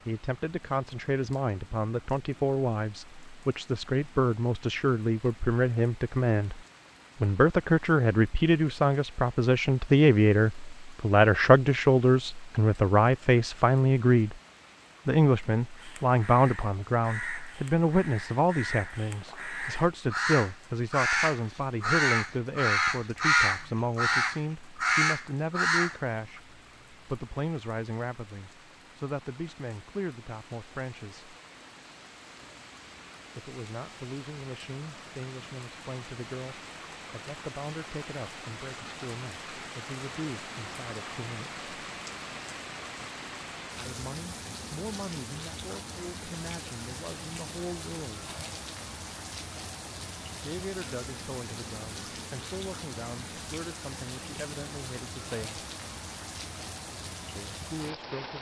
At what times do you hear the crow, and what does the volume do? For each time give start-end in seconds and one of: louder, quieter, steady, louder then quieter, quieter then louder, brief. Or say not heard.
15.8-26.4 louder.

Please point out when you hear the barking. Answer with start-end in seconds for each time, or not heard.
not heard.